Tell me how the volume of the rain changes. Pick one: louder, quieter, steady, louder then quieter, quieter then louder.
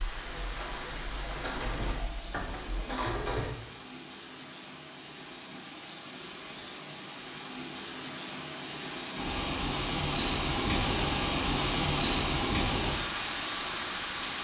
louder.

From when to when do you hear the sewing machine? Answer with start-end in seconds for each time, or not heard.
0.0-3.5.